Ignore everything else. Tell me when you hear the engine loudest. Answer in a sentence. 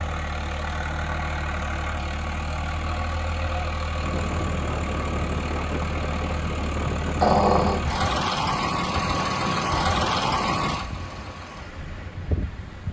The loudest moment of the engine is at 10 seconds.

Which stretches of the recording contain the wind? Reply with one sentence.
The wind can be heard from 4.0 to 12.8 s.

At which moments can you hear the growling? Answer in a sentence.
The growling can be heard from 7.2 to 7.8 s.